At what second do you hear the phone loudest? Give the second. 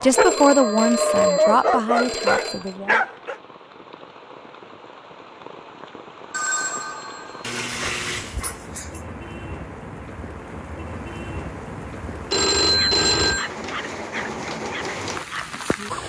13 s.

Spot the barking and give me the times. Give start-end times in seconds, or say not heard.
0.0-3.4, 7.4-9.1, 12.8-16.0.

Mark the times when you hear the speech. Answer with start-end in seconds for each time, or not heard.
0.0-3.0.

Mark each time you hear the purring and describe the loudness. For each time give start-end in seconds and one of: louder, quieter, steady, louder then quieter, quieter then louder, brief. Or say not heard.
not heard.